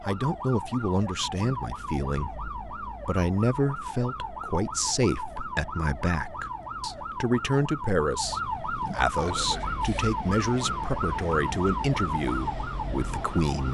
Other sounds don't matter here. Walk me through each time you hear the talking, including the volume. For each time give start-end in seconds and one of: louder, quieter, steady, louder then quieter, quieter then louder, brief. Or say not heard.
0.0-13.6 steady.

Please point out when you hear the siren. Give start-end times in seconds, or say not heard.
0.0-13.6.